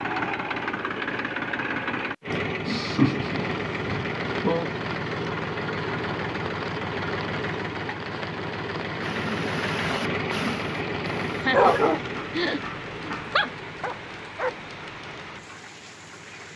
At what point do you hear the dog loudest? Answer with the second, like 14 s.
12 s.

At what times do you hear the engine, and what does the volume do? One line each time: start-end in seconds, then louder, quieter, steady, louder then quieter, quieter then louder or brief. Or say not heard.
0.0-16.5 quieter.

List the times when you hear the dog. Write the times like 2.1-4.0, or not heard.
9.0-14.6.